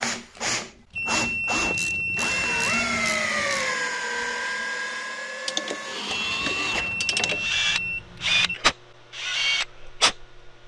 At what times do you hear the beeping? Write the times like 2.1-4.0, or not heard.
0.9-3.1, 6.1-8.6.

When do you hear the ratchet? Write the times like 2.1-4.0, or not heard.
1.7-3.7, 5.5-7.5.